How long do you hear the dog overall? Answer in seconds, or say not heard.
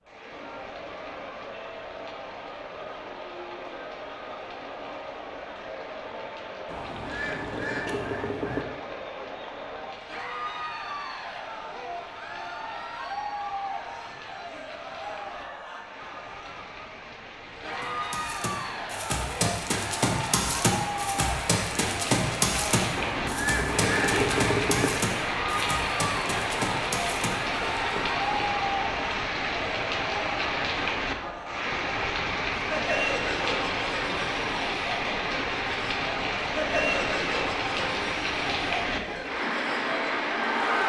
not heard.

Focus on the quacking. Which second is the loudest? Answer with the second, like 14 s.
24 s.